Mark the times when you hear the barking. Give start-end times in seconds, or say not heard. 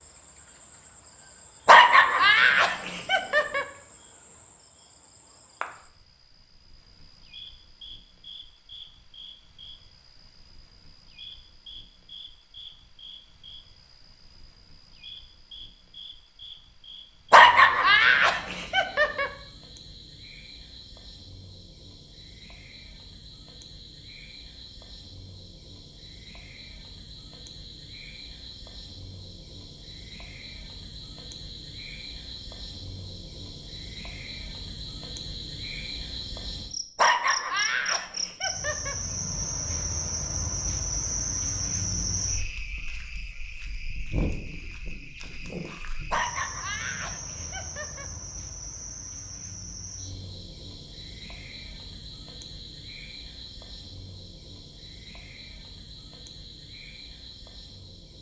1.6-3.6, 17.3-19.3, 37.0-39.0, 46.1-48.0.